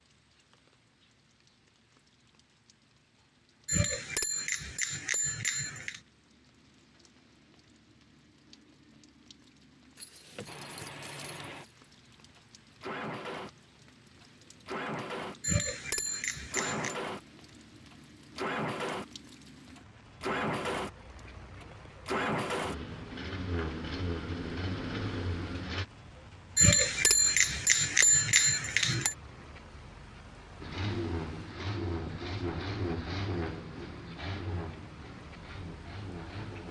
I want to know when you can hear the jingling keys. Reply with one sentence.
The jingling keys can be heard from 9.9 to 11.8 s.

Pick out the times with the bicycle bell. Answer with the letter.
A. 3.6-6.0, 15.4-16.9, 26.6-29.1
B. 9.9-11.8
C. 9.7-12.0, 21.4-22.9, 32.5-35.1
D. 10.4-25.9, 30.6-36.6
A.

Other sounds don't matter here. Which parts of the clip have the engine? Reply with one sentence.
You can hear the engine from 10.4 to 25.9 s and from 30.6 to 36.6 s.